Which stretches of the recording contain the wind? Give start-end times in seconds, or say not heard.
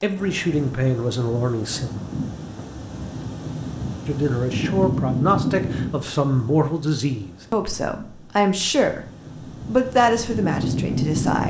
0.0-11.4.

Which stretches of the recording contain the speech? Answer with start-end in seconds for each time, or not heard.
0.0-1.9, 4.0-9.1, 9.7-11.4.